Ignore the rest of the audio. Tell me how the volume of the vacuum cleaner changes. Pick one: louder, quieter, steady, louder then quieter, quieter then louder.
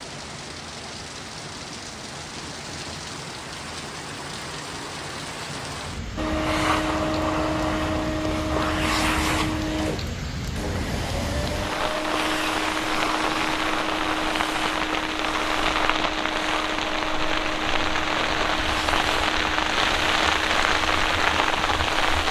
quieter.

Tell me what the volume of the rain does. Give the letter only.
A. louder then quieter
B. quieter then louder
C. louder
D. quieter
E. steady
C.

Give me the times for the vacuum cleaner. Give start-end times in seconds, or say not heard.
6.2-22.2.